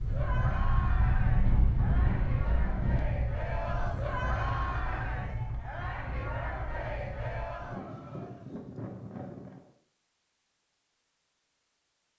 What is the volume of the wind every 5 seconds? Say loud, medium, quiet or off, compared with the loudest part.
loud, medium, off.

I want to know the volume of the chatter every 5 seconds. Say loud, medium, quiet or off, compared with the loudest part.
loud, loud, off.